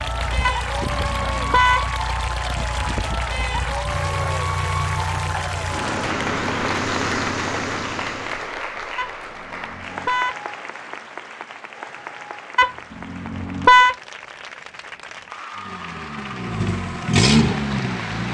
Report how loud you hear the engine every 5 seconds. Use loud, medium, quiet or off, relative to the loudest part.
medium, medium, off, loud.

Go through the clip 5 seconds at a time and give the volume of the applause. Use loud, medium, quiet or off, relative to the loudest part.
loud, loud, medium, medium.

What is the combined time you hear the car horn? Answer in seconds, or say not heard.
4 s.